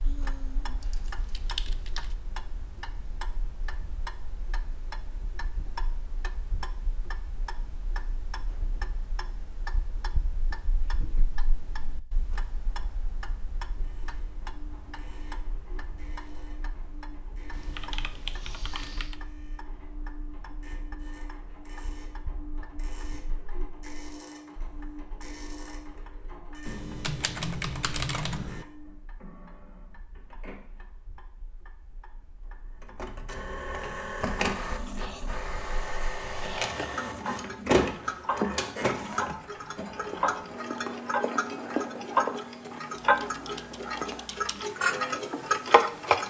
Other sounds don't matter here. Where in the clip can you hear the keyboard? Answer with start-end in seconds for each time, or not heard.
0.8-2.1, 17.5-19.2, 26.6-28.6, 43.0-44.6.